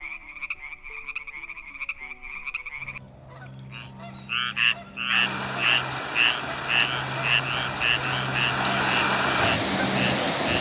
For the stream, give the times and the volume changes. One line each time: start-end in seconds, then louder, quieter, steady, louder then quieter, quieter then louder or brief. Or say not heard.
5.1-10.5 louder.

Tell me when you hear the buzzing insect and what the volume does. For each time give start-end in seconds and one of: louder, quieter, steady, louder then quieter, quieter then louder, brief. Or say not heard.
not heard.